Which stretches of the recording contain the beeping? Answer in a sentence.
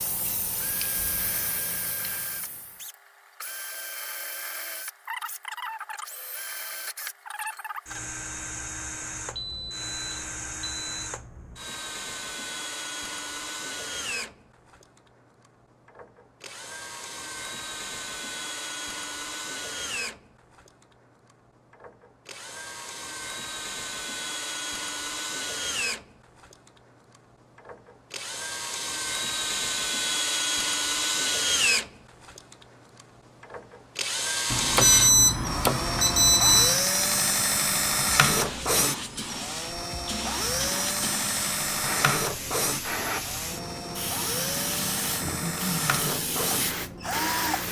You can hear the beeping from 9.3 to 11.1 s and from 34.5 to 36.8 s.